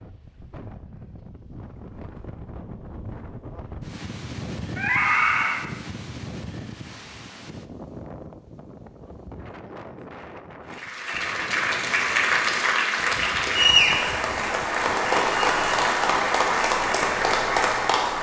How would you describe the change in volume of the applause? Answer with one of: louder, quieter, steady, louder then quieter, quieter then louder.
steady.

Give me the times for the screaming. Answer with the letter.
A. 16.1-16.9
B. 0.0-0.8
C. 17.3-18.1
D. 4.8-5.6
D.